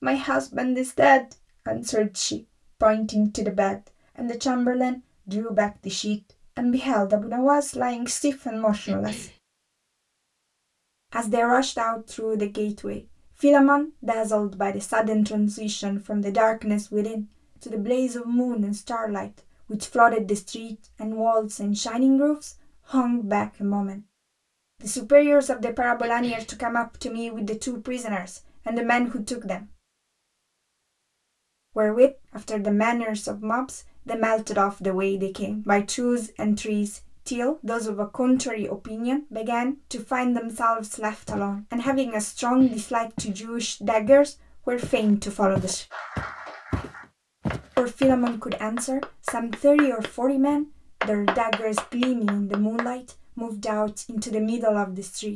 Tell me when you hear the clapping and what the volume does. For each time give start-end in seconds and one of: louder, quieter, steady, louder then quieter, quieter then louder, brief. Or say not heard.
45.9-52.9 louder.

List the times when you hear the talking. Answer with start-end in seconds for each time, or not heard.
0.0-9.2, 11.1-24.0, 24.8-29.6, 31.8-45.9, 47.8-55.3.